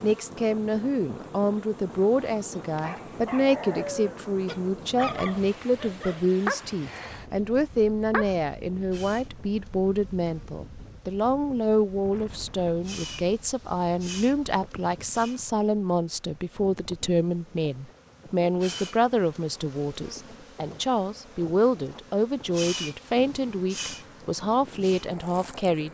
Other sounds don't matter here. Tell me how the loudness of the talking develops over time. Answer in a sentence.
The loudness of the talking stays about the same.